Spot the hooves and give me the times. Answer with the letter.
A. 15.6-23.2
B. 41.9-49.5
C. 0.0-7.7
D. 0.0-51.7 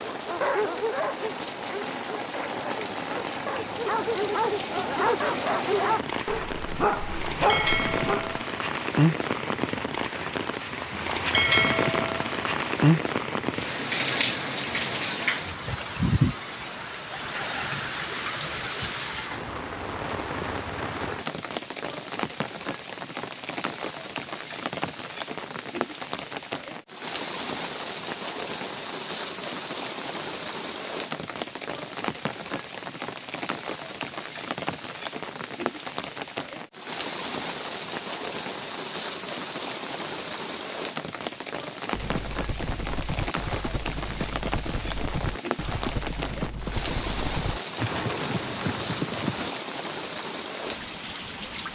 B.